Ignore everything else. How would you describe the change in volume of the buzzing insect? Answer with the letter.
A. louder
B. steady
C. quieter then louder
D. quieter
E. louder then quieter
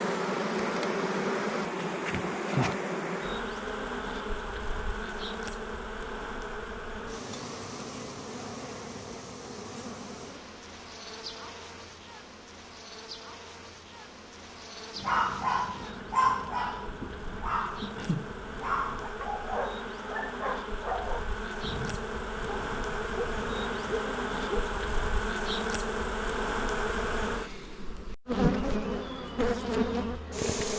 C.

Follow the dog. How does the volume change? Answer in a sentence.
The volume of the dog goes down.